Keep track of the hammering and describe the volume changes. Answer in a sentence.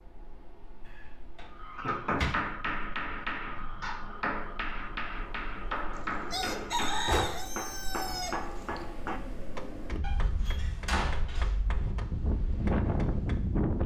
The volume of the hammering goes down.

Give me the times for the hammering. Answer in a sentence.
The hammering can be heard from 1.6 to 13.6 s.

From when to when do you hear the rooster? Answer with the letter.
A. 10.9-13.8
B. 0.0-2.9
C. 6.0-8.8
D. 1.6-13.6
C.